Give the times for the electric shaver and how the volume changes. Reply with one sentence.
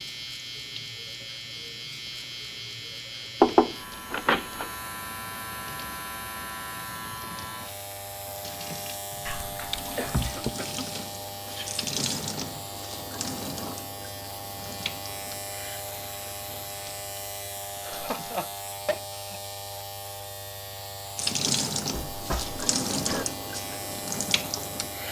You can hear the electric shaver from 0.0 to 25.0 s, at a steady volume.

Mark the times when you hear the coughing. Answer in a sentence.
You can hear the coughing from 9.1 to 10.9 s and from 17.8 to 19.4 s.